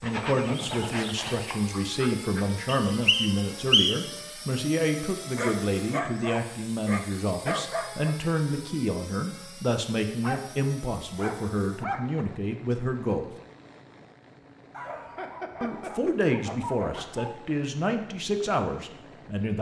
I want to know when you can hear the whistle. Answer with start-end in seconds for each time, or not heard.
2.9-4.1.